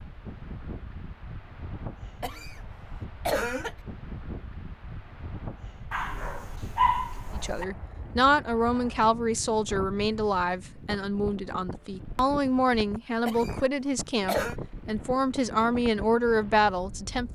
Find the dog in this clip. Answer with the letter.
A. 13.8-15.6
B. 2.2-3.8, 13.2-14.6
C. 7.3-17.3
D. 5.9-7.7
D.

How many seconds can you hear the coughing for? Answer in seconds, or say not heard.
3 s.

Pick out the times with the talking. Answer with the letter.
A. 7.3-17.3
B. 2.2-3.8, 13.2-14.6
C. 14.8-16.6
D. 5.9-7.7
A.